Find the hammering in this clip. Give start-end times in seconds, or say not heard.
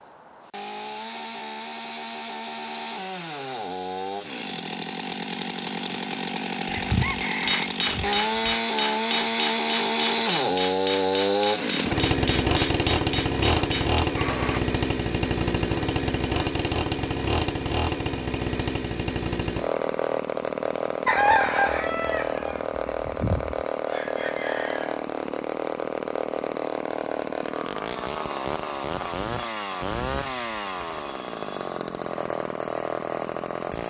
7.5-14.7.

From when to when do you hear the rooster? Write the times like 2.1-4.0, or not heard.
6.7-8.6, 21.1-24.9.